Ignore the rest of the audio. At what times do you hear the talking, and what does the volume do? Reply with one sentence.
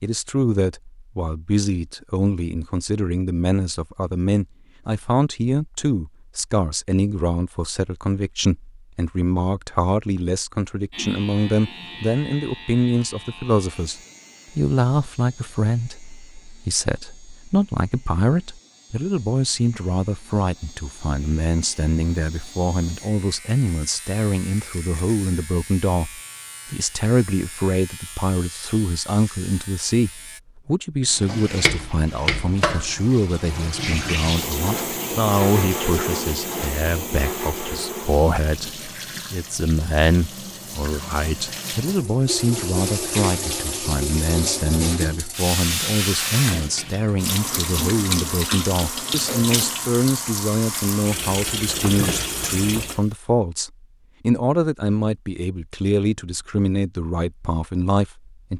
You can hear the talking from 0.0 to 58.5 s, at a steady volume.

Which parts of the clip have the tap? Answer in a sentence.
You can hear the tap from 31.1 to 53.0 s.